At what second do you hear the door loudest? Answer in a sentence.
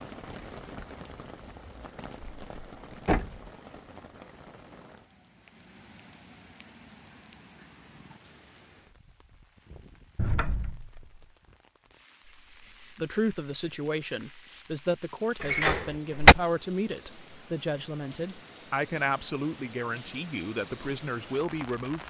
The volume of the door peaks at 16 seconds.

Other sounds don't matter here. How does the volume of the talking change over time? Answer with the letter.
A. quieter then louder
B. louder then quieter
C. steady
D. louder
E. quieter
C.